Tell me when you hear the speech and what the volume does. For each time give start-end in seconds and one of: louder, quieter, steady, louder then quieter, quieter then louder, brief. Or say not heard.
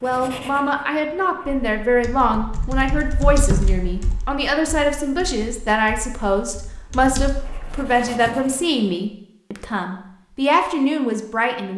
0.0-11.7 steady.